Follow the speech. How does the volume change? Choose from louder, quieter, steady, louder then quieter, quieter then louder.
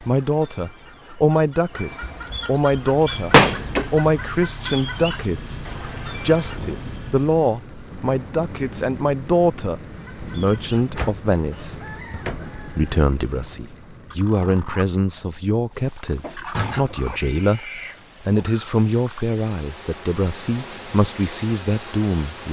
steady.